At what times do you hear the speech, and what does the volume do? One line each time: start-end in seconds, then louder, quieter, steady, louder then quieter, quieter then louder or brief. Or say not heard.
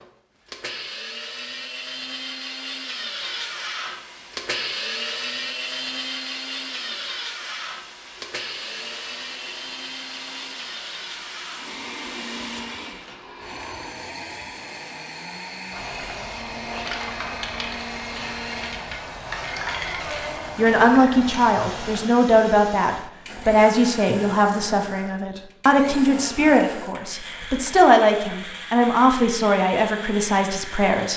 20.6-31.1 steady.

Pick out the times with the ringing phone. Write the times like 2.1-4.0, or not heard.
not heard.